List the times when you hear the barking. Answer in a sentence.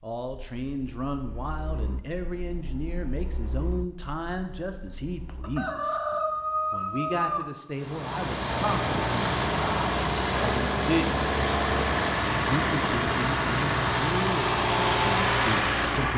The barking can't be heard in this clip.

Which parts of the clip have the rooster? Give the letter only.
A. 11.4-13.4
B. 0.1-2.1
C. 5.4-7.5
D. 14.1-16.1
C.